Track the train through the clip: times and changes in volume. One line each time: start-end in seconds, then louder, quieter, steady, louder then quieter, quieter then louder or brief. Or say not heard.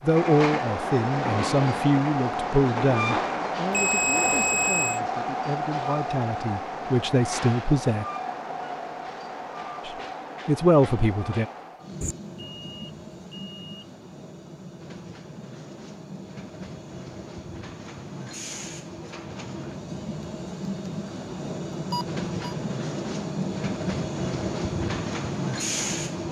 0.0-26.2 quieter then louder.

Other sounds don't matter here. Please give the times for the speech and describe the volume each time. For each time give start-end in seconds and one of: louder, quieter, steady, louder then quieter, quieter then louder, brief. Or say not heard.
0.0-8.1 quieter then louder
9.8-11.4 brief.